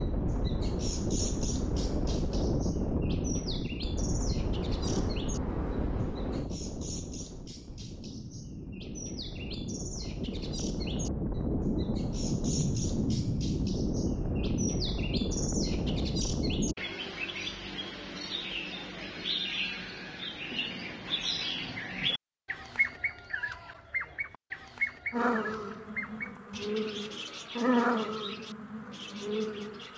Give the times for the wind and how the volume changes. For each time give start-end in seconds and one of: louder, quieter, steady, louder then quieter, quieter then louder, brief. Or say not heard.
0.0-16.8 quieter then louder.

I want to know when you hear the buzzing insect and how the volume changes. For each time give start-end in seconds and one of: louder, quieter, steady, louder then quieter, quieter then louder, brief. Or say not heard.
4.5-6.5 brief
25.1-29.9 louder then quieter.